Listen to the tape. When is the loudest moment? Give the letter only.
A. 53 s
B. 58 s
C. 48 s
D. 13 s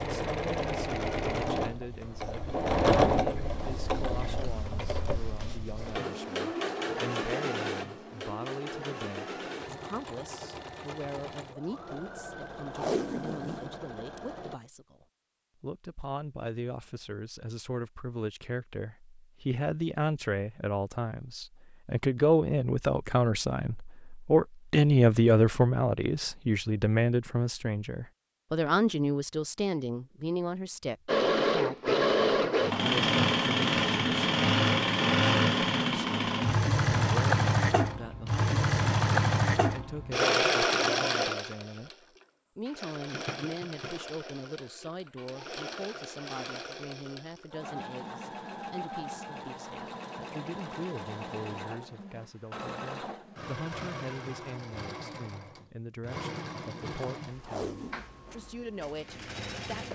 D.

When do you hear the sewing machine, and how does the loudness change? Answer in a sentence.
The sewing machine can be heard from 0.0 to 14.6 s, getting quieter; and from 31.1 to 59.9 s, getting quieter.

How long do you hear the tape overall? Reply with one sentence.
The tape can be heard for 2 seconds in total.